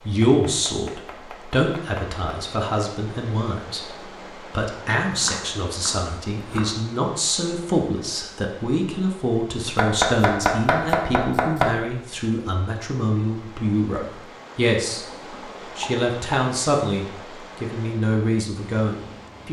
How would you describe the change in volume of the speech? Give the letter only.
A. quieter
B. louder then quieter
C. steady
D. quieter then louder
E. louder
C.